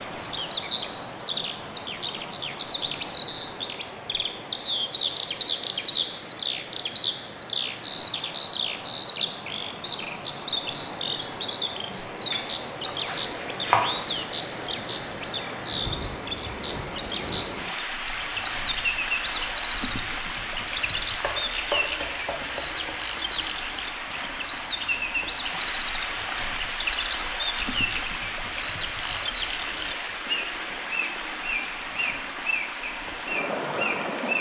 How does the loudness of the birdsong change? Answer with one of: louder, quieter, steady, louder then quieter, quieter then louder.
quieter.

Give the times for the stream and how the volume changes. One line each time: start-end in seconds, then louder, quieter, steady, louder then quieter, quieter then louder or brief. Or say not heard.
0.0-34.3 louder.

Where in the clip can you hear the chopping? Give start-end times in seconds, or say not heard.
11.9-13.9, 21.1-23.0.